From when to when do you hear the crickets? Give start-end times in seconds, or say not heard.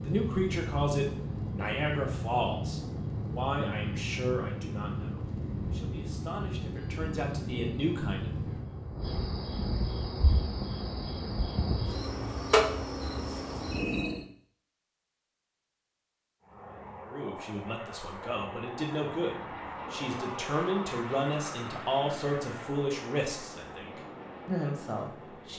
0.0-14.2.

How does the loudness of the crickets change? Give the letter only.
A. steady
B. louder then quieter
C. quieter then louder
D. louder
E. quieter
D.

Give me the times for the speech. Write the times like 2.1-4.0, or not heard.
0.0-8.5, 17.1-25.5.